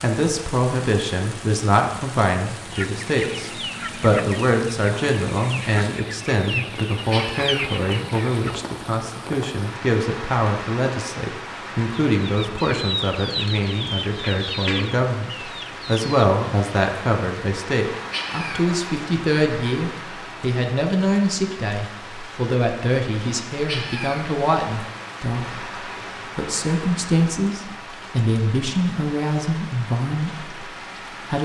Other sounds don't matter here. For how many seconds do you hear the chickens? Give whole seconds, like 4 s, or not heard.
10 s.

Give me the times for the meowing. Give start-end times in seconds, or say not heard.
7.1-7.8, 18.1-18.8, 23.6-24.3.